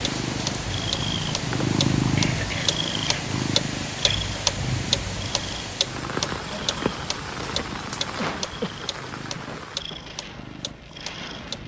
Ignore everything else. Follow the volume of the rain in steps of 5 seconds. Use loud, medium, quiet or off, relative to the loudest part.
loud, loud, medium.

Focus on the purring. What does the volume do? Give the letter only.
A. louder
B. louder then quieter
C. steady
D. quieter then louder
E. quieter
E.